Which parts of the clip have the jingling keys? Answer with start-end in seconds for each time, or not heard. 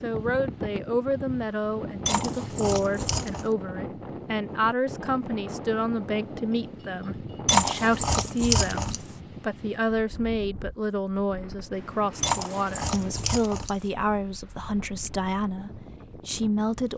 2.0-3.5, 7.5-9.1, 12.2-13.8.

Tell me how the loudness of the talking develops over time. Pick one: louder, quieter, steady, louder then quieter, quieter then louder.
steady.